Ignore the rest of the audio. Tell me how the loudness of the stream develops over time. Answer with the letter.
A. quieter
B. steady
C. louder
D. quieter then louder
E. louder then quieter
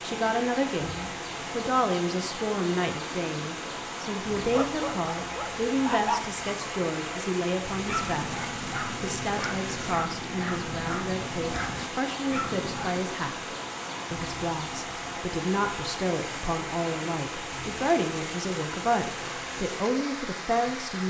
B.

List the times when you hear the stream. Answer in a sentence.
You can hear the stream from 0.0 to 21.0 s.